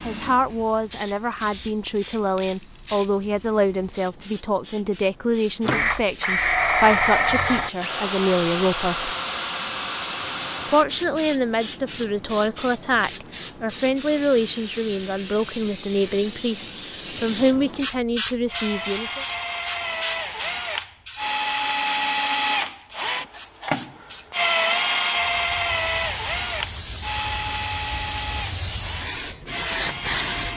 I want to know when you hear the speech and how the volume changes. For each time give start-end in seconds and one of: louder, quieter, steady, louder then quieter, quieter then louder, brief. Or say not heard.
0.0-9.2 steady
10.7-19.2 steady.